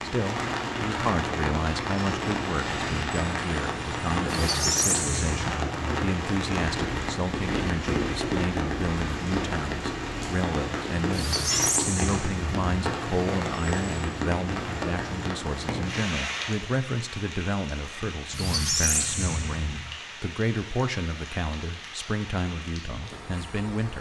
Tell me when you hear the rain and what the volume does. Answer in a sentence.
The rain can be heard from 0.0 to 23.9 s, getting quieter.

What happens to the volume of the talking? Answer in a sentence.
The volume of the talking stays about the same.